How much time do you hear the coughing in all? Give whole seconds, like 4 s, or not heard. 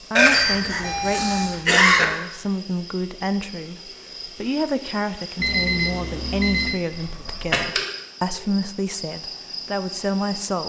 3 s.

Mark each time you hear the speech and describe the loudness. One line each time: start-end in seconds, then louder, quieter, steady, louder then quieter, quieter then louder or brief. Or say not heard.
0.1-10.6 steady.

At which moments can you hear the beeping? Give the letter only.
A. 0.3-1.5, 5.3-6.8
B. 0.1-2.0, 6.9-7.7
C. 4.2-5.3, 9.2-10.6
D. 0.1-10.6
A.